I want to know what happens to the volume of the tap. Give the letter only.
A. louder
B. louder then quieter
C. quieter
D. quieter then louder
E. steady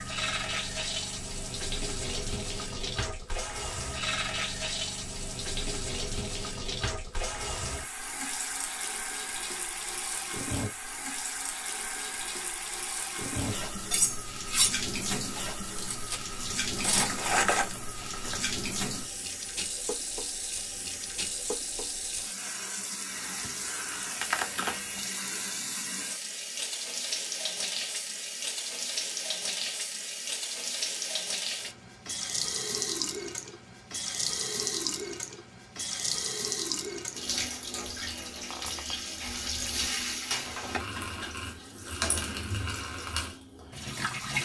E.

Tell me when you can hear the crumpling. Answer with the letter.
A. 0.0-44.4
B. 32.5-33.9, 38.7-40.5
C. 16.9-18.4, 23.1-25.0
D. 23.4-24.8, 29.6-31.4
C.